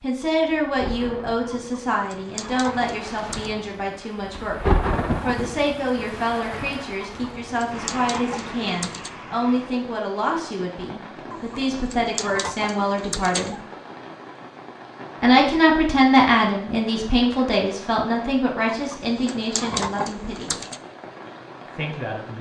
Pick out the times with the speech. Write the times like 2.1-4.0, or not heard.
0.0-13.6, 15.2-20.6, 21.8-22.3.